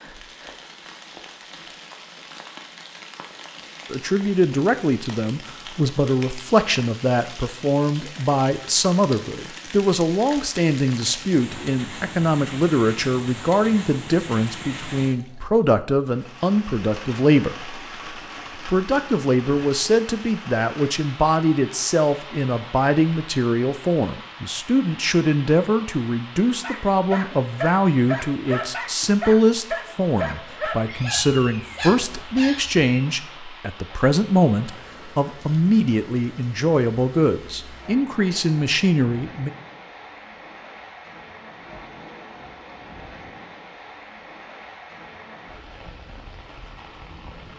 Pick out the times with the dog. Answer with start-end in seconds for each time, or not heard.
26.6-33.1.